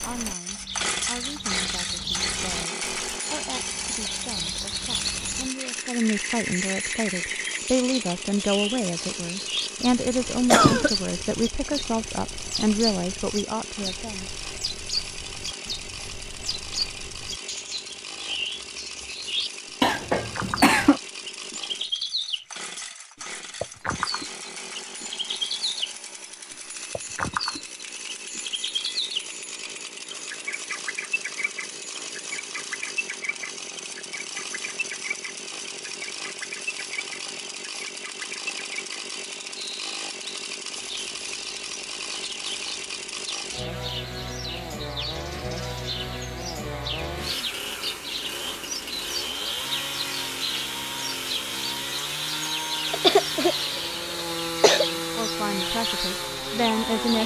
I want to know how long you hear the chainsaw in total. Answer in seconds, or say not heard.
57 s.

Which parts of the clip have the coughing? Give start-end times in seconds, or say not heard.
10.5-10.9, 19.8-21.0, 52.9-54.9.